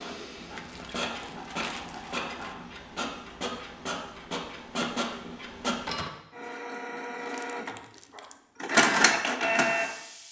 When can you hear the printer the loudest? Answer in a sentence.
The loudest moment of the printer is at 9 seconds.